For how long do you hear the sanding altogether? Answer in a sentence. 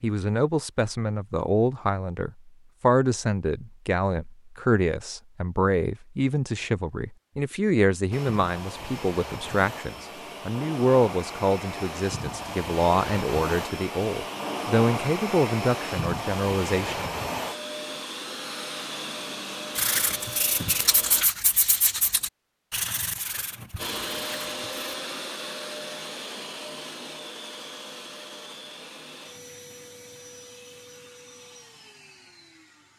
The sanding can be heard for 5 seconds in total.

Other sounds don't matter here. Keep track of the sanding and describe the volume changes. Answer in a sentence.
The loudness of the sanding goes down.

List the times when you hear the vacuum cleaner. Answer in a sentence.
The vacuum cleaner can be heard from 8.1 to 21.2 s and from 23.8 to 32.9 s.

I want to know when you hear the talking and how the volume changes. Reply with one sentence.
The talking can be heard from 0.0 to 17.1 s, at a steady volume.